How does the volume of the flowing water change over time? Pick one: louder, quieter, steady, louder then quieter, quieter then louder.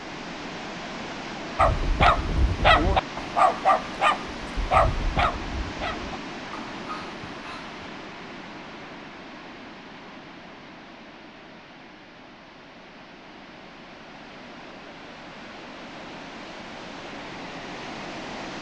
quieter then louder.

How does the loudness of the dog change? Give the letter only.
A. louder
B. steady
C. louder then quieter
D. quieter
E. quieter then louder
D.